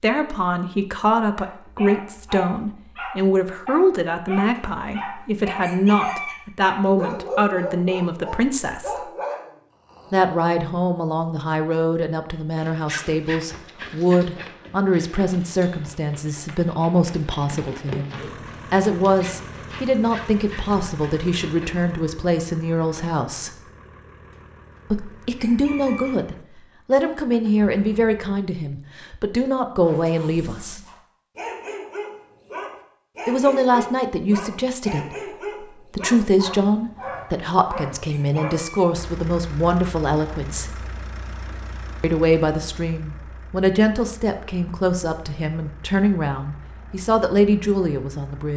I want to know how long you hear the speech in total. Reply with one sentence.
You can hear the speech for 42 seconds altogether.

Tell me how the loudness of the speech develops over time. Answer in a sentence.
The loudness of the speech stays about the same.